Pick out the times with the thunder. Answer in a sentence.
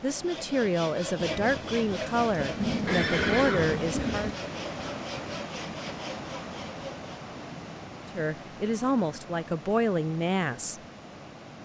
The thunder can be heard from 1.2 to 4.3 s.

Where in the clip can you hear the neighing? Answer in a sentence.
You can hear the neighing from 2.9 to 4.0 s.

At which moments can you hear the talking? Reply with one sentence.
You can hear the talking from 0.0 to 4.3 s and from 8.2 to 10.8 s.